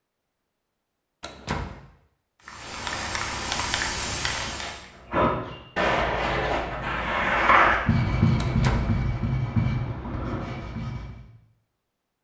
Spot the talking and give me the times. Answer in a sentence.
The talking can't be heard in this clip.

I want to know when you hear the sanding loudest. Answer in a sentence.
The loudest moment of the sanding is at 8 seconds.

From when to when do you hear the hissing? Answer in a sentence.
You can hear the hissing from 2.4 to 4.8 s.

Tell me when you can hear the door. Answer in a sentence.
You can hear the door from 1.2 to 1.8 s and from 8.3 to 8.9 s.